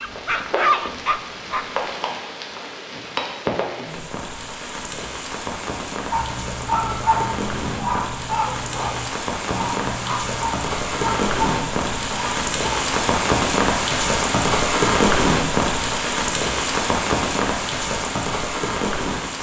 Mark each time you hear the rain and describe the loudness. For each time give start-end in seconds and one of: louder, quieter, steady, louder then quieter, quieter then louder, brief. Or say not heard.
0.0-19.3 louder.